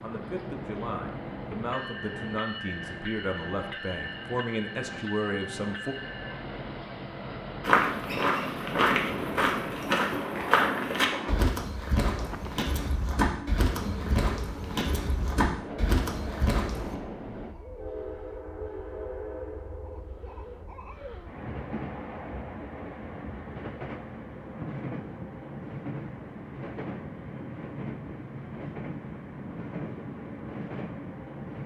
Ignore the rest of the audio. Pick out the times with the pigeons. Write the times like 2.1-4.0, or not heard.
not heard.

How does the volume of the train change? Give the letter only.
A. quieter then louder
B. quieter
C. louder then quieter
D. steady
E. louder
D.